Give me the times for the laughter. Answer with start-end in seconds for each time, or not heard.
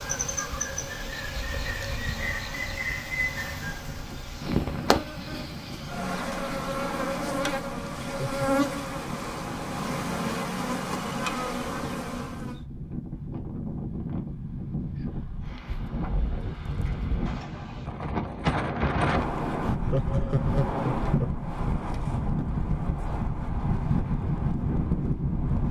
8.0-8.4, 19.7-21.4.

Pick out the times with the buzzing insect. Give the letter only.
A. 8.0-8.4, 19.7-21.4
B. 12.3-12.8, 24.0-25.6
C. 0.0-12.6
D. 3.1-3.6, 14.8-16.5
C.